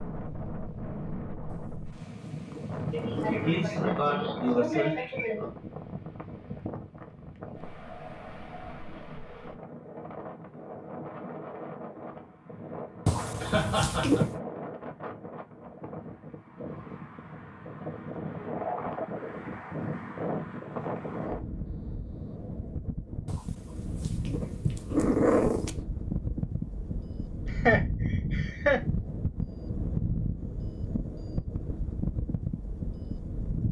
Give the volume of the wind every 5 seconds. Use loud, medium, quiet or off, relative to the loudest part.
loud, medium, medium, loud, loud, loud, loud.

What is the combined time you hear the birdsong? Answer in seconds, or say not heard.
not heard.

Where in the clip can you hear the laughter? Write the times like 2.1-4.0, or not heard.
2.9-5.5, 13.4-14.2, 27.4-28.8.